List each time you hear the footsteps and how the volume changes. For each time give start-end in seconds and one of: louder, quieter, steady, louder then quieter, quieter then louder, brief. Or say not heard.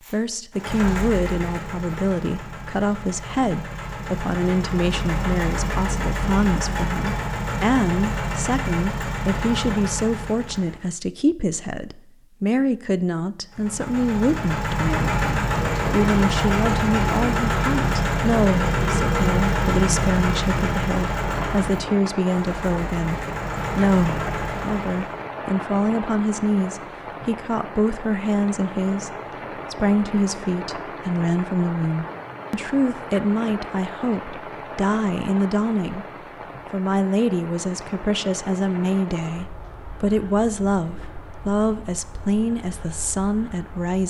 not heard.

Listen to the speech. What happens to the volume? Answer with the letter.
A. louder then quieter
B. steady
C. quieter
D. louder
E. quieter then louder
B.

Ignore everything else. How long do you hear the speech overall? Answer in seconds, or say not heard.
43 s.